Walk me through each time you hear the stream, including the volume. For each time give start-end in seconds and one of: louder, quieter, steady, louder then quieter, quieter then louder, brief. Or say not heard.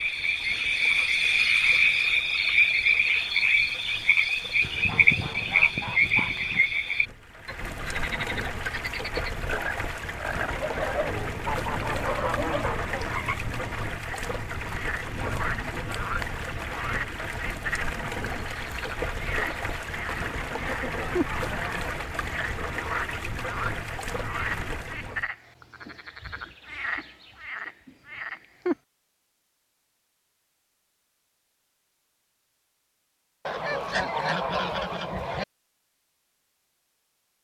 0.0-25.3 louder.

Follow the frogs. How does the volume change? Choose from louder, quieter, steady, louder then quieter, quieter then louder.
quieter.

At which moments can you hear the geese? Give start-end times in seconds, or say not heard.
4.6-6.7, 10.4-12.9, 19.9-21.9, 33.5-35.5.